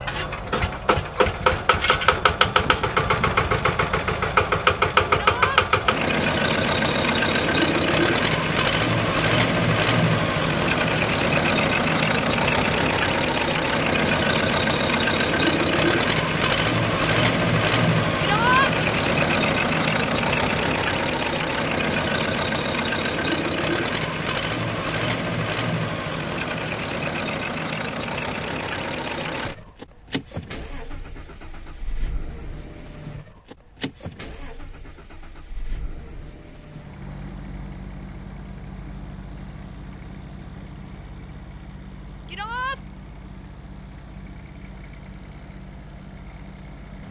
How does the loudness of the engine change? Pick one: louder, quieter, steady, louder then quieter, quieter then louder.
quieter.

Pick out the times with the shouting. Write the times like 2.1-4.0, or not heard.
5.2-5.6, 18.2-18.7, 42.2-42.8.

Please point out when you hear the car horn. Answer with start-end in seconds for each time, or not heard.
not heard.